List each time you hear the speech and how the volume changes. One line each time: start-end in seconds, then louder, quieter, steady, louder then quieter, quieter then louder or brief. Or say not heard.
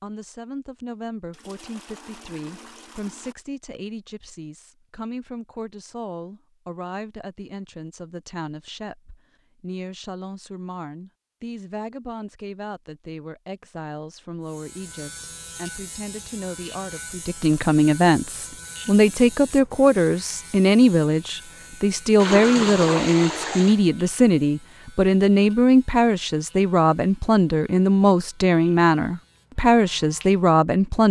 0.0-31.0 louder.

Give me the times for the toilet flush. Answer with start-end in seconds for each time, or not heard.
1.3-3.4, 22.1-23.8.